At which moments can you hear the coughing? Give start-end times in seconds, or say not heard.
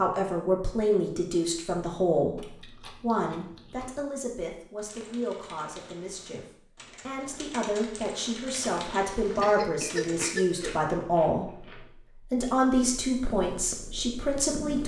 9.4-10.8.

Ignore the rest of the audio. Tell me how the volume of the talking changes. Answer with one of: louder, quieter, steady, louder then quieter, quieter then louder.
quieter then louder.